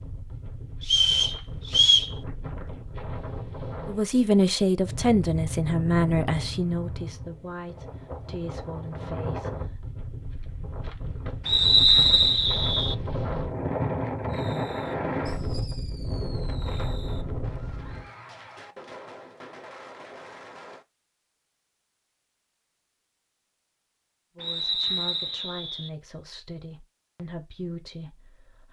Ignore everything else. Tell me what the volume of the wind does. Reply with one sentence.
The volume of the wind goes up.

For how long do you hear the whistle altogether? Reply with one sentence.
You can hear the whistle for 4 seconds altogether.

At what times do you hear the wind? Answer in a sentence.
The wind can be heard from 0.0 to 18.1 s.